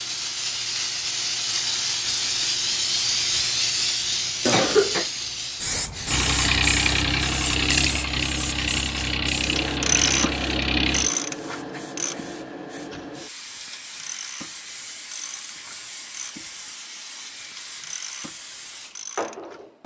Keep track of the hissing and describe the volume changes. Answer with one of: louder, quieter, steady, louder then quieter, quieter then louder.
quieter.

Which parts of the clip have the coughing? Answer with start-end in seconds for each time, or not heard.
4.5-5.0.